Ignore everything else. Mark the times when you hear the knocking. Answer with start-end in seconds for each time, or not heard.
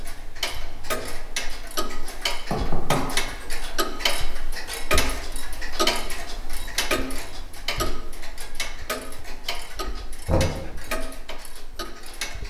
2.5-3.1, 10.2-10.7.